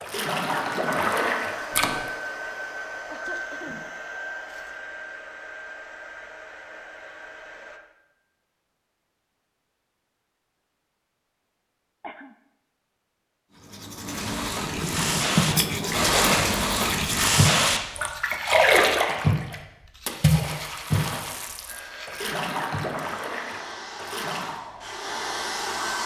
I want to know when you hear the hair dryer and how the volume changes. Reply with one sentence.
The hair dryer can be heard from 0.0 to 7.8 s, getting quieter; and from 21.6 to 26.0 s, getting louder.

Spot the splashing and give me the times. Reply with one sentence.
The splashing can be heard from 0.0 to 2.1 s and from 14.1 to 24.6 s.